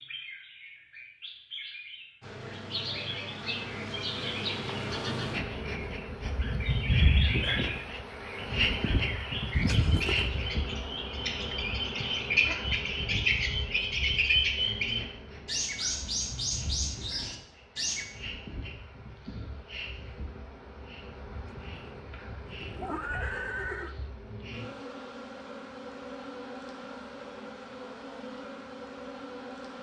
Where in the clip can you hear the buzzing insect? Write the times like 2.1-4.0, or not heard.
2.2-29.7.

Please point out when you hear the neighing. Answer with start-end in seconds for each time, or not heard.
9.6-10.4, 21.3-23.9.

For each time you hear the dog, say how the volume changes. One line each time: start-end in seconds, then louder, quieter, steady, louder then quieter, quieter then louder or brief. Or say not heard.
not heard.